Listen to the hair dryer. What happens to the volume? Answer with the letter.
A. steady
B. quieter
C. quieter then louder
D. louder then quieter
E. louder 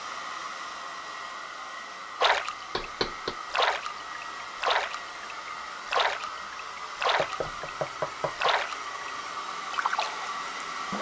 A.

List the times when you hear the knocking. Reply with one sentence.
You can hear the knocking from 2.8 to 3.4 s and from 7.2 to 8.5 s.